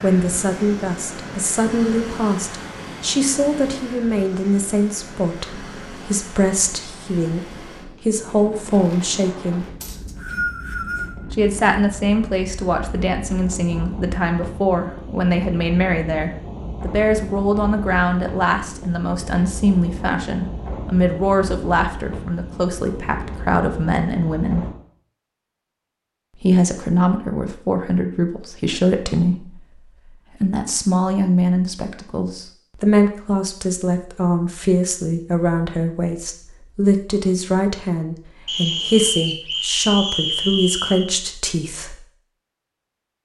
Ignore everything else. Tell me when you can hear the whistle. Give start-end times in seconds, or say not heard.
9.8-11.2, 38.5-41.1.